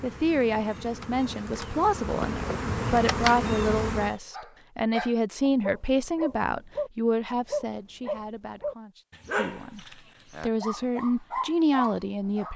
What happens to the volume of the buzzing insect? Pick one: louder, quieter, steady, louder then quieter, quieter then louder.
louder.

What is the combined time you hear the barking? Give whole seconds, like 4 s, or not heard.
8 s.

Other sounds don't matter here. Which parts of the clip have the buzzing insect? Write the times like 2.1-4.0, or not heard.
0.0-4.2.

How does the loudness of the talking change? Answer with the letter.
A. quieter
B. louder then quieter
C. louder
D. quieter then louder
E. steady
D.